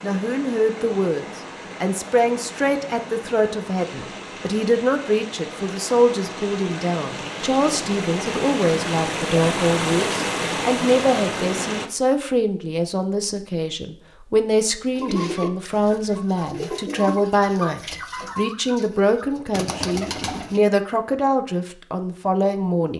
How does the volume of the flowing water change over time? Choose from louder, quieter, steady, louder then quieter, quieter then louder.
louder.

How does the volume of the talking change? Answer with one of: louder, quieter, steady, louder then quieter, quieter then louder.
steady.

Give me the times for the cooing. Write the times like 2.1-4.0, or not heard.
14.9-20.6.